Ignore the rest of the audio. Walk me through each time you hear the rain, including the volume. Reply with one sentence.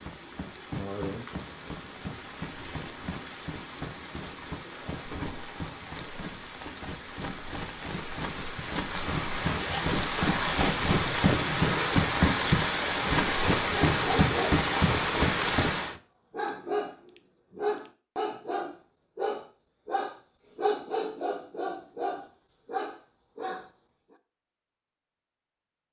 The rain can be heard from 0.0 to 15.9 s, getting louder.